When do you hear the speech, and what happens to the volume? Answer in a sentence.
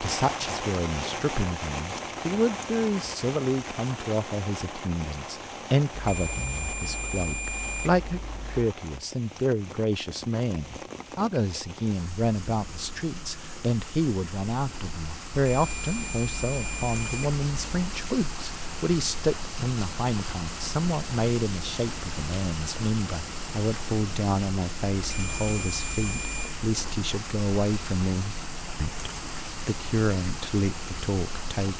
The speech can be heard from 0.0 to 31.7 s, at a steady volume.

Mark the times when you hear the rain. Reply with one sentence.
You can hear the rain from 0.0 to 31.7 s.